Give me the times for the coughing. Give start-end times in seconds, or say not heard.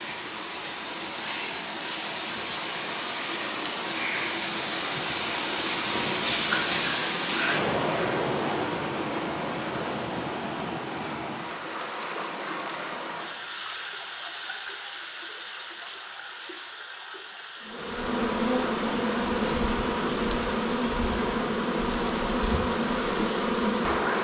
not heard.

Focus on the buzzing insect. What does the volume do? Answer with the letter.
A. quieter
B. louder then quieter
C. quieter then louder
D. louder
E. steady
E.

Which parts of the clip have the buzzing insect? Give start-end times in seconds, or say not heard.
17.6-24.1.